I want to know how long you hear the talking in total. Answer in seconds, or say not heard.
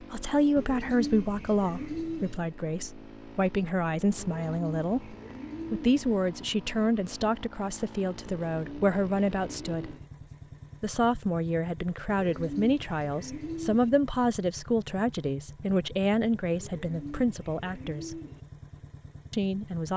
18 s.